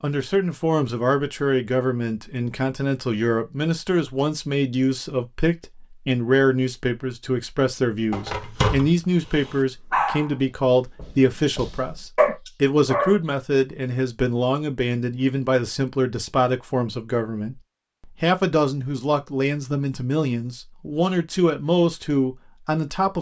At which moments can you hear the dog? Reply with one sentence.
The dog can be heard from 8.1 to 10.3 s and from 10.9 to 13.2 s.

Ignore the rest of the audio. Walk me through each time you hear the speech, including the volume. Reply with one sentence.
The speech can be heard from 0.0 to 23.1 s, at a steady volume.